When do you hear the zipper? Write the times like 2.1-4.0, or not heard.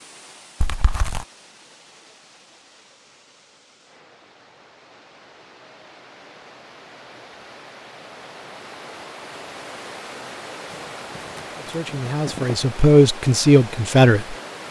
0.6-1.2, 10.7-12.6.